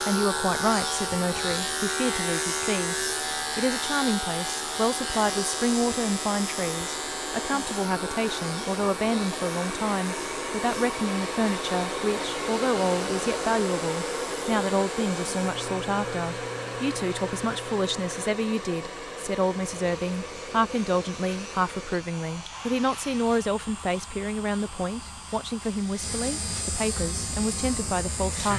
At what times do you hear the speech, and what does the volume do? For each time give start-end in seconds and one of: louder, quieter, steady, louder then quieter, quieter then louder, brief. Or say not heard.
0.0-3.0 brief
3.5-28.5 steady.